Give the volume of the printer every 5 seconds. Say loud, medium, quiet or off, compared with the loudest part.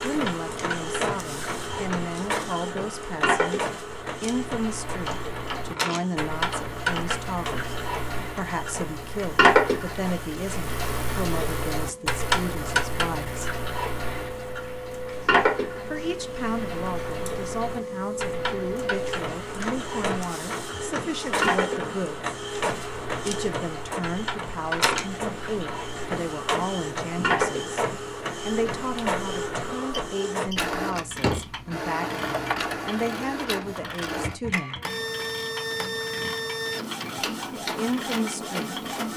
loud, medium, medium, loud, loud, loud, loud, loud.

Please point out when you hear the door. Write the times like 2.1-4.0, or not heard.
5.0-7.0, 31.1-31.6.